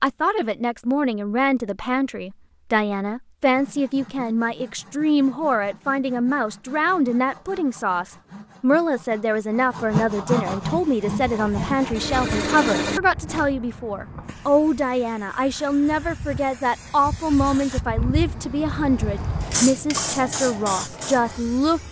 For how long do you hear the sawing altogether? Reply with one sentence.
You can hear the sawing for 10 seconds altogether.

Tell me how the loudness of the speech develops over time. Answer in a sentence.
The loudness of the speech stays about the same.